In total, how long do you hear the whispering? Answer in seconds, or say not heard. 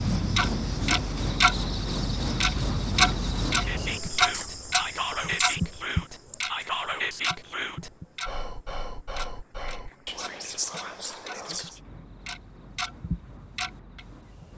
8 s.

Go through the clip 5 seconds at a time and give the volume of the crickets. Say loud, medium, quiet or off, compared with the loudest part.
loud, quiet, quiet.